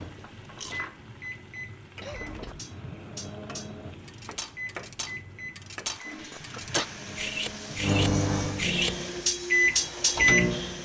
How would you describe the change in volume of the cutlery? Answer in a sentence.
The loudness of the cutlery goes up.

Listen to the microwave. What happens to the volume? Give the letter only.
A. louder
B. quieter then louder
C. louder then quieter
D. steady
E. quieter
A.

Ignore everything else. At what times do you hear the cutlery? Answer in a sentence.
You can hear the cutlery from 2.5 to 10.2 s.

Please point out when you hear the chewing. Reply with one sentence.
You can hear the chewing from 0.2 to 0.9 s.